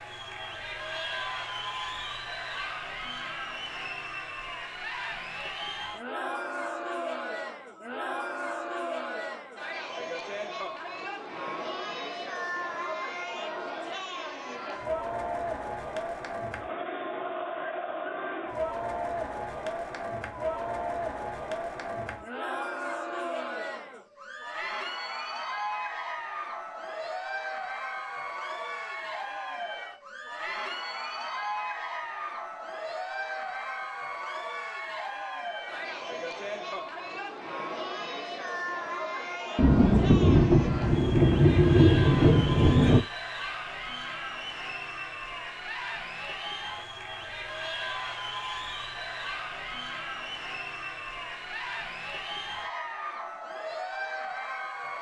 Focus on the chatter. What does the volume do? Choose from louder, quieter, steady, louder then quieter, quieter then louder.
steady.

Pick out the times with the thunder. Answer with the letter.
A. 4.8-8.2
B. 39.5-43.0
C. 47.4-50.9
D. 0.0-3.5
B.